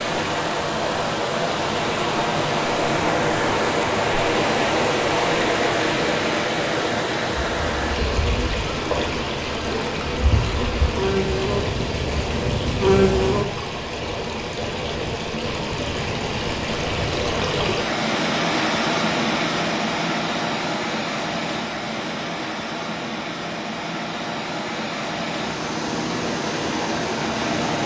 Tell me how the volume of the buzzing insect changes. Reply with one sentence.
The loudness of the buzzing insect goes up.